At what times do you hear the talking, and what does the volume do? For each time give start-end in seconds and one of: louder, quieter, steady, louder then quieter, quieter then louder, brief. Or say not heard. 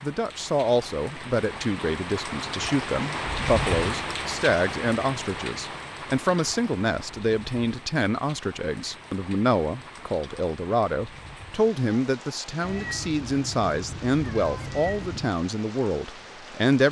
0.0-16.8 steady.